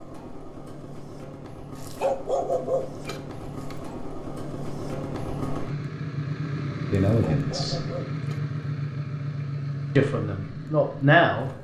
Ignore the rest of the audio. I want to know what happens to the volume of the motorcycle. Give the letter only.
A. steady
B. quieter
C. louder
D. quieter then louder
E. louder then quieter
C.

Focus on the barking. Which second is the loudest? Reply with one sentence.
The loudest moment of the barking is at 2 seconds.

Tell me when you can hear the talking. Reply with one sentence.
The talking can be heard from 6.9 to 7.8 s and from 9.9 to 11.5 s.